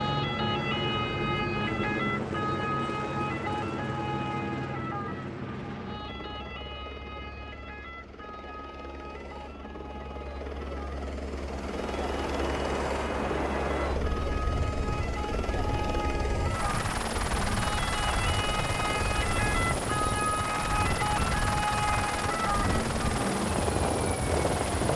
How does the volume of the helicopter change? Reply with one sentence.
The volume of the helicopter goes down, then up.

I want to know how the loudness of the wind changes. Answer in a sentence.
The volume of the wind goes down, then up.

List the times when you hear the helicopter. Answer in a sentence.
You can hear the helicopter from 0.0 to 24.9 s.